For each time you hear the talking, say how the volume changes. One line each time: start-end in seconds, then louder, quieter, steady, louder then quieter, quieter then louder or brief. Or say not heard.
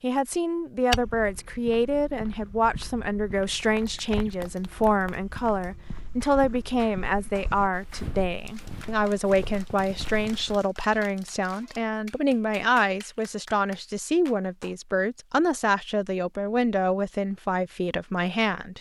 0.0-18.7 steady.